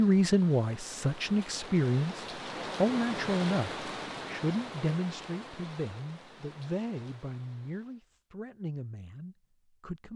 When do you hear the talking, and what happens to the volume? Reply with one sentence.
The talking can be heard from 0.0 to 10.1 s, getting quieter.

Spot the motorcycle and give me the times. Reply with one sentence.
You can't hear the motorcycle here.